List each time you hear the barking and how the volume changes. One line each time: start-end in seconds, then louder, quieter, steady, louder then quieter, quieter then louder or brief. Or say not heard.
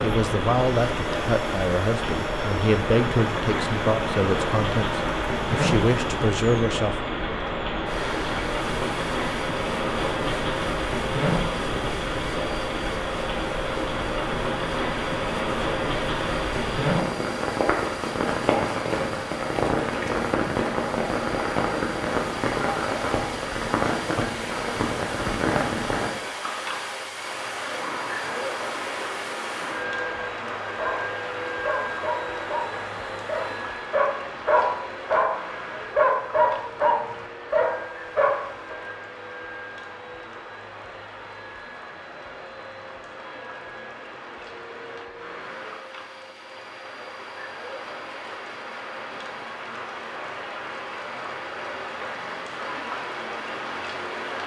30.8-38.8 louder.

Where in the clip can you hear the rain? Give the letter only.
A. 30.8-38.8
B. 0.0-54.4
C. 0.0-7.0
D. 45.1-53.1
B.